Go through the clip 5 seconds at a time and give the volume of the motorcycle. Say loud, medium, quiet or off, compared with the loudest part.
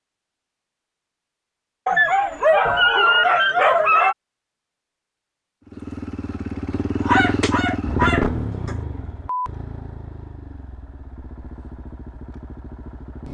off, loud, quiet.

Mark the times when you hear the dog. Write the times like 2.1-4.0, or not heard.
1.9-4.2, 7.0-8.8.